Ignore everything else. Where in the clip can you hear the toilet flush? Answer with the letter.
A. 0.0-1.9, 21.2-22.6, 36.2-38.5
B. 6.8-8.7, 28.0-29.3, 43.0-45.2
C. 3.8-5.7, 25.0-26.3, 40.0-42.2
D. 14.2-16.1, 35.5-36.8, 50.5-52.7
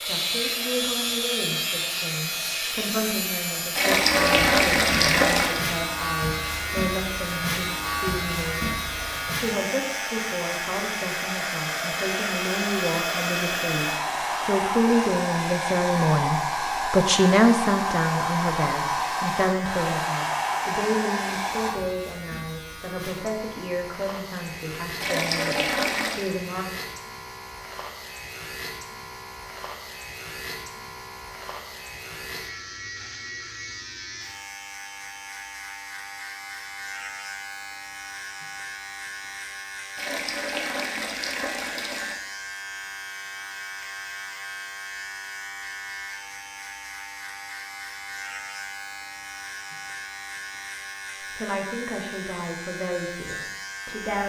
C.